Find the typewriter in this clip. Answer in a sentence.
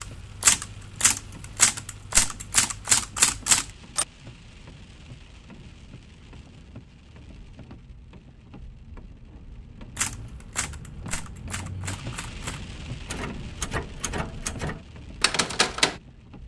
You can hear the typewriter from 0.0 to 4.0 s and from 9.9 to 15.9 s.